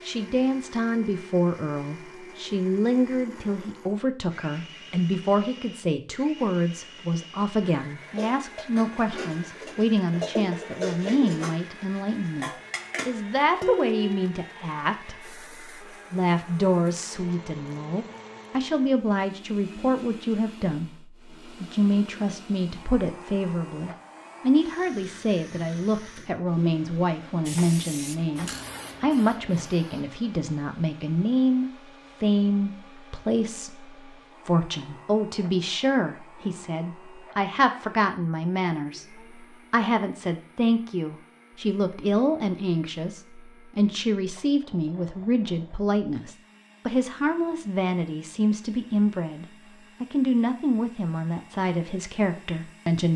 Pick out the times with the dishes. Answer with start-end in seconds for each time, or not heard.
8.0-14.3.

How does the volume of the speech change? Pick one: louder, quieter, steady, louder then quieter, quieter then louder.
steady.